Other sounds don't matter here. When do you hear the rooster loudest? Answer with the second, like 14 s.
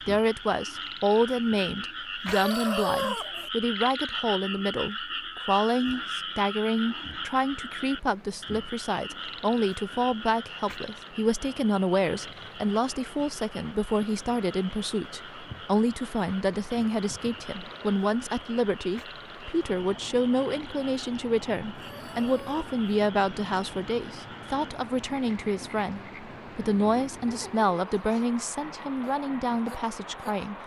3 s.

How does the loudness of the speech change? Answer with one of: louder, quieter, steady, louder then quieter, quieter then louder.
steady.